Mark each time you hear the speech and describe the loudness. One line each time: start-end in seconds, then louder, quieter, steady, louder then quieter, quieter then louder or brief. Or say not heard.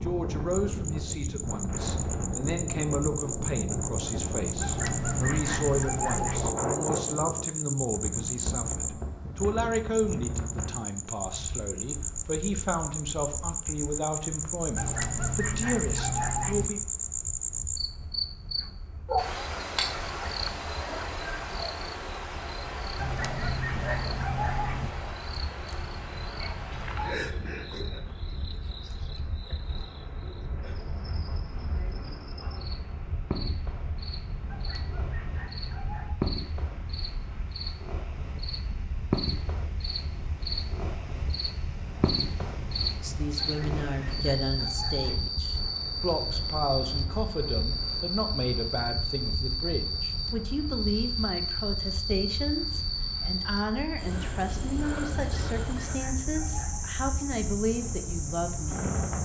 0.0-16.8 steady
43.0-58.9 steady.